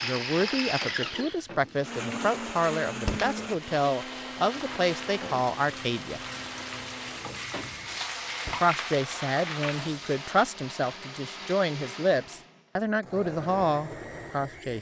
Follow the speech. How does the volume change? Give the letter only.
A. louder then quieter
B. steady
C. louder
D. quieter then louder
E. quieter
B.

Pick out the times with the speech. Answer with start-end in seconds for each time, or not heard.
0.0-6.2, 8.6-14.7.